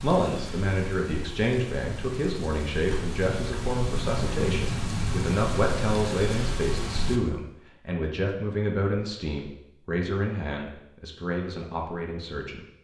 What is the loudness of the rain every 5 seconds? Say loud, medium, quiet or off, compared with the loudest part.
loud, loud, off.